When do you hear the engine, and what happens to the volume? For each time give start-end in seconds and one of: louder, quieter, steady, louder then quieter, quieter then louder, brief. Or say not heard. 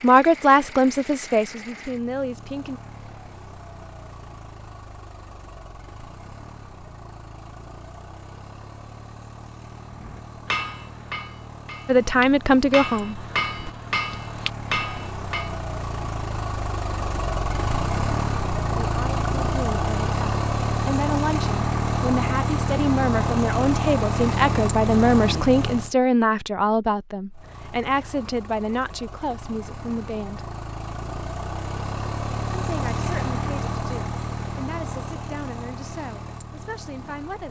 0.0-25.9 louder
27.3-37.4 louder then quieter.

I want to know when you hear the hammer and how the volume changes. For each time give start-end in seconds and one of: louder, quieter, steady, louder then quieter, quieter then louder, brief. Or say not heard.
9.9-15.6 quieter then louder.